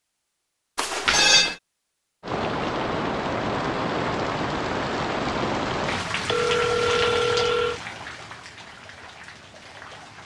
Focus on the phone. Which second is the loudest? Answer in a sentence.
The loudest moment of the phone is at 1 second.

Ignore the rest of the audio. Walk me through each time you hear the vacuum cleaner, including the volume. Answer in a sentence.
The vacuum cleaner can't be heard in this clip.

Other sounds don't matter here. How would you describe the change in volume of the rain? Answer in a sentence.
The volume of the rain goes down.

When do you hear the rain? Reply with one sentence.
The rain can be heard from 2.2 to 10.2 s.